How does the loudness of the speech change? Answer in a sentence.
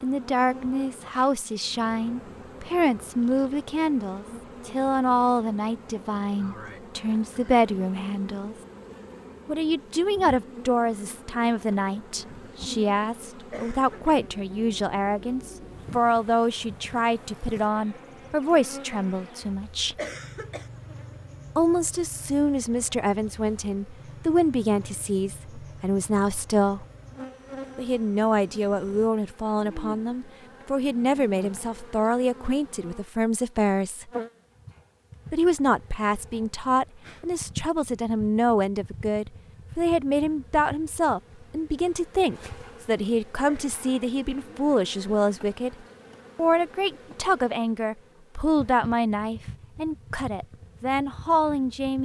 The volume of the speech stays about the same.